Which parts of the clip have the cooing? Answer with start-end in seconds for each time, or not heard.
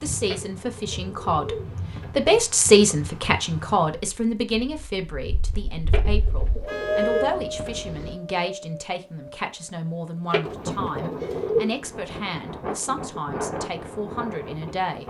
0.2-2.1, 5.9-7.8, 10.3-11.8.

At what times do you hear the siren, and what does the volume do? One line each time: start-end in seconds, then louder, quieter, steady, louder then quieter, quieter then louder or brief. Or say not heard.
not heard.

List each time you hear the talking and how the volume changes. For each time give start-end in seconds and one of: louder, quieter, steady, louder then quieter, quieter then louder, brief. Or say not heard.
0.0-15.0 quieter.